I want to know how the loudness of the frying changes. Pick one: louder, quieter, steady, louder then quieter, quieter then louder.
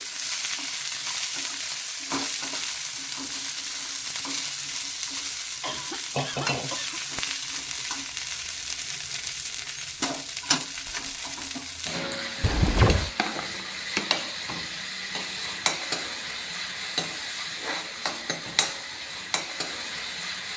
steady.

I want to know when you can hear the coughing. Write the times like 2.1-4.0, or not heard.
5.6-7.0, 12.4-13.1.